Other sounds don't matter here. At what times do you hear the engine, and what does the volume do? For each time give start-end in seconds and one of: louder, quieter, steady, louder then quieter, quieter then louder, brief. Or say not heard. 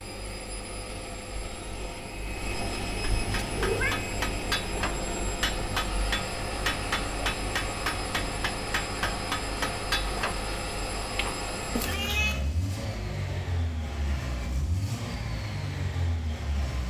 0.0-16.8 steady.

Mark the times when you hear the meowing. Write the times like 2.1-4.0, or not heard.
3.0-4.0, 11.8-12.4.